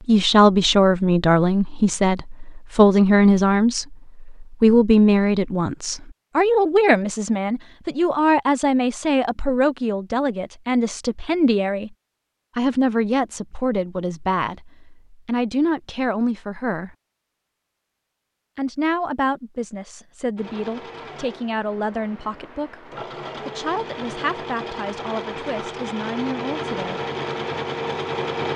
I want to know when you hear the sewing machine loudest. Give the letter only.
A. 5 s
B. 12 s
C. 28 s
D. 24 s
C.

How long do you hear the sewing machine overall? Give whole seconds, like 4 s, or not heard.
8 s.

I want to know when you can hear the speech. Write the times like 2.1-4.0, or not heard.
0.1-11.9, 12.6-16.9, 18.6-27.0.